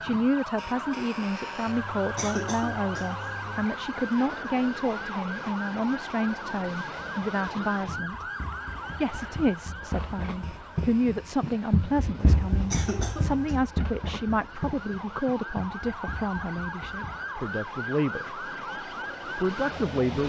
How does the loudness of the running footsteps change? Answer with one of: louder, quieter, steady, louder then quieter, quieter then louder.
louder then quieter.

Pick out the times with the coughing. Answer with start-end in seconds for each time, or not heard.
1.6-3.6, 12.2-13.6.